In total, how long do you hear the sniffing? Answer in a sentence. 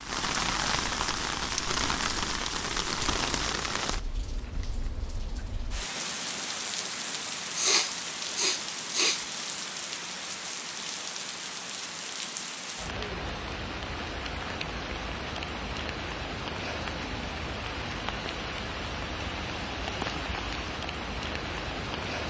The sniffing can be heard for 2 seconds in total.